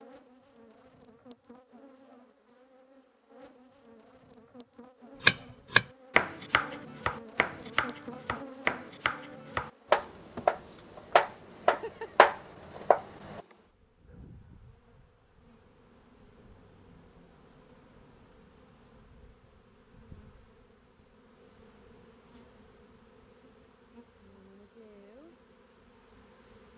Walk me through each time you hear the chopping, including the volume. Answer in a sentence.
The chopping can be heard from 5.2 to 13.4 s, getting quieter then louder.